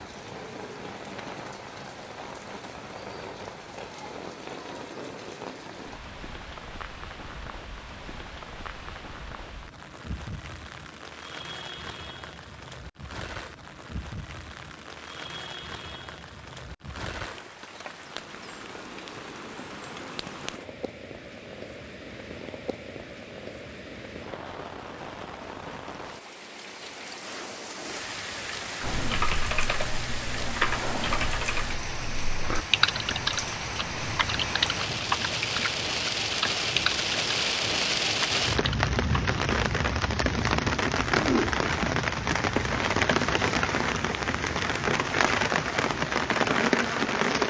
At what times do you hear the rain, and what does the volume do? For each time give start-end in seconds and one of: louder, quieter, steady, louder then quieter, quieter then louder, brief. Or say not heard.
0.0-47.4 louder.